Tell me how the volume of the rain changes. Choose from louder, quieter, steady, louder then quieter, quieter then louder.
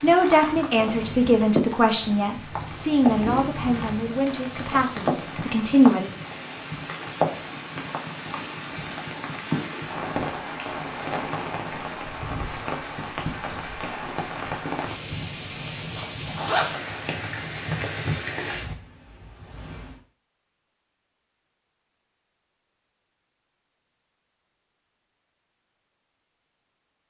steady.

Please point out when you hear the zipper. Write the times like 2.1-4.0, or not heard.
15.6-16.8.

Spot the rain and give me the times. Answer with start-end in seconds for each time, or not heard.
0.0-19.9.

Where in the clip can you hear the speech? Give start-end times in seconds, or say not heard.
0.0-6.1.